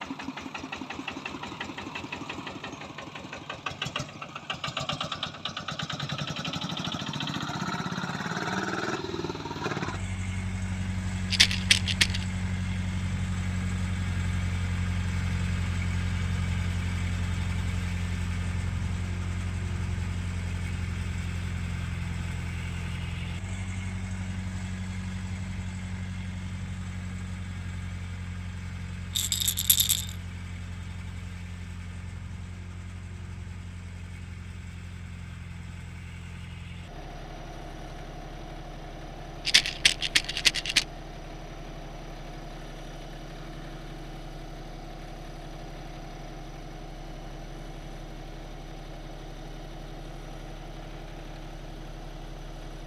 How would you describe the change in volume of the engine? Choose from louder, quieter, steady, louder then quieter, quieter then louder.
quieter.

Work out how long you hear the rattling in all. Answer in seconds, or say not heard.
3 s.